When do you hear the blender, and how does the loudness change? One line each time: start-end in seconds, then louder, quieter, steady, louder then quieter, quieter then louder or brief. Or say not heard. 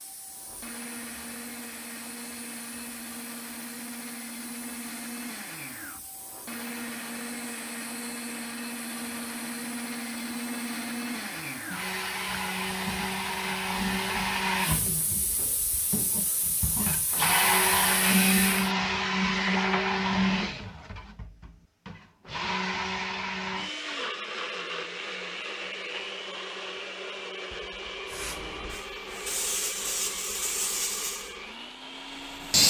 0.0-32.6 louder then quieter.